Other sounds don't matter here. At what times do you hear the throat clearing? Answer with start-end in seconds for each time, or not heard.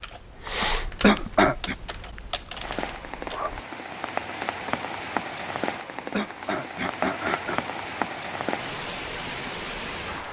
1.0-1.8, 6.1-7.6.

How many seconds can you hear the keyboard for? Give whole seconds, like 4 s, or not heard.
4 s.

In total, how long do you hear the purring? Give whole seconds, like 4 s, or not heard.
not heard.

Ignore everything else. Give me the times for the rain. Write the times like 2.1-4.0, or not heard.
2.5-10.2.